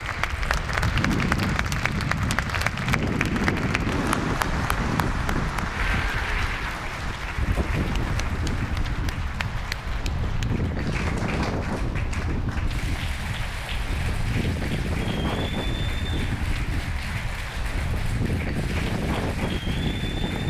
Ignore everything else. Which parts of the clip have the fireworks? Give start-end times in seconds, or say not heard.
not heard.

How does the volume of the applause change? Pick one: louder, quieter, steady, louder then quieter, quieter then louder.
quieter.